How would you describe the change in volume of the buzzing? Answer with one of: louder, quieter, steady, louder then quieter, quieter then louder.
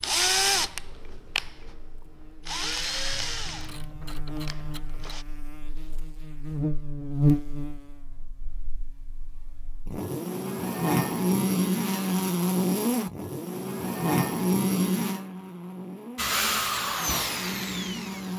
louder then quieter.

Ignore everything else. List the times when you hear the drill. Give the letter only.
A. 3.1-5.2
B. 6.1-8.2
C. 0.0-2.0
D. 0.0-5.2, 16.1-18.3
D.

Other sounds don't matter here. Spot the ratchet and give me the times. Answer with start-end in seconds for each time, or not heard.
3.1-5.2.